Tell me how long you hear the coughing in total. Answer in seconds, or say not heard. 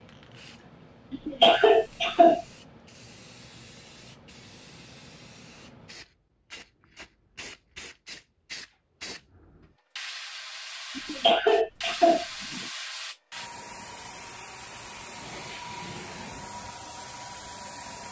3 s.